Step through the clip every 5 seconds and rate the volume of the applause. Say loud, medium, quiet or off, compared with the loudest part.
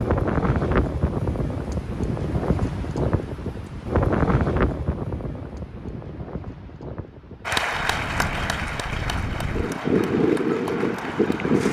off, loud, medium.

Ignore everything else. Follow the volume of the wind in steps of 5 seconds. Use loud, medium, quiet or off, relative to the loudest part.
loud, medium, loud.